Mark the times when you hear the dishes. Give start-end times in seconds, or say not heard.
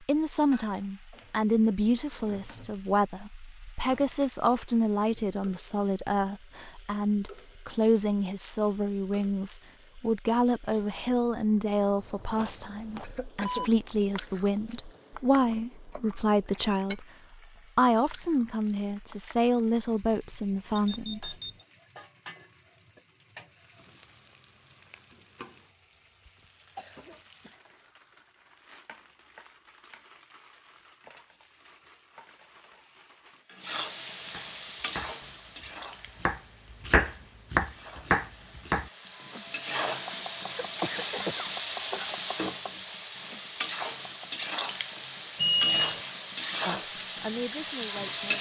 not heard.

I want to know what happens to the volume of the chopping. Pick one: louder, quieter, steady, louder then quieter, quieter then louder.
louder then quieter.